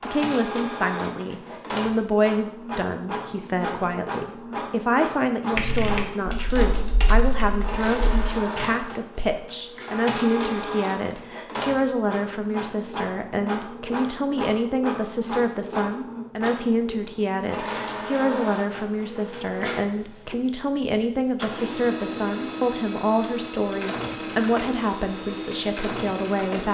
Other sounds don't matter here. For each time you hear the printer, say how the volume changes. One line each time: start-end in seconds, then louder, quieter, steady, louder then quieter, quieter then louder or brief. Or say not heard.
0.0-26.6 steady.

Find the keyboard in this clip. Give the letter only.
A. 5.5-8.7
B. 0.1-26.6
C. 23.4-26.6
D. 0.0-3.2
A.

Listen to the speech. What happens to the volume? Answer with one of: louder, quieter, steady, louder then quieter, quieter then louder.
steady.